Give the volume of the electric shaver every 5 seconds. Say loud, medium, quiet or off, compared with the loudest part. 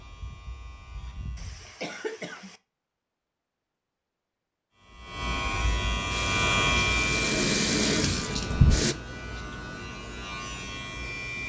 quiet, loud, medium.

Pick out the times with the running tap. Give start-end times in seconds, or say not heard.
6.1-8.9.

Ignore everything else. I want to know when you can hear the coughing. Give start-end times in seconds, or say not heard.
1.4-2.6.